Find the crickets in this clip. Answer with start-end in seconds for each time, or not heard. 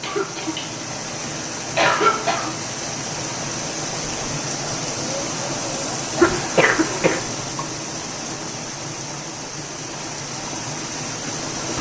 not heard.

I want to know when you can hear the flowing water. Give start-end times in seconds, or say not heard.
0.0-11.7.